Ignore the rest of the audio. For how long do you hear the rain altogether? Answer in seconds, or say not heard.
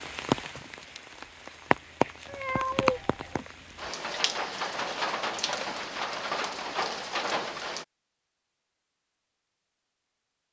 8 s.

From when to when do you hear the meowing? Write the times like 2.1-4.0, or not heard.
2.2-3.5.